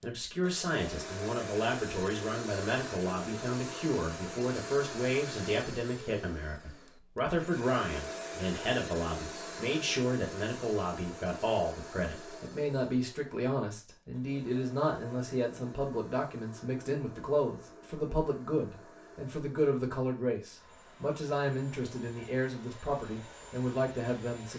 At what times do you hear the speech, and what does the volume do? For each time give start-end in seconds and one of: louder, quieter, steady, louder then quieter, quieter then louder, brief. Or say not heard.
0.0-24.5 steady.